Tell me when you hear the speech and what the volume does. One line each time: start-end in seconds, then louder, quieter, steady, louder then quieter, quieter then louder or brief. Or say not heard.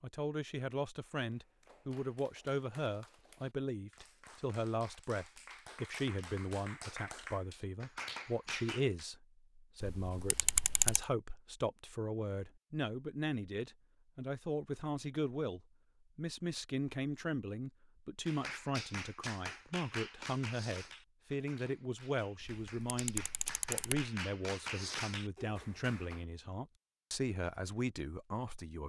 0.0-28.8 steady.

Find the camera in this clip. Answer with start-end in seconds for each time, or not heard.
9.8-11.1, 22.4-24.1.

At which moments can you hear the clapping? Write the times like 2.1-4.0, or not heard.
1.0-9.1, 18.2-26.2.